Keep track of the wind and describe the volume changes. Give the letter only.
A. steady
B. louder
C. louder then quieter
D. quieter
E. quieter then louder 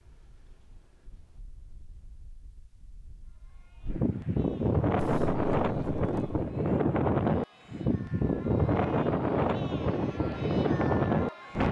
B.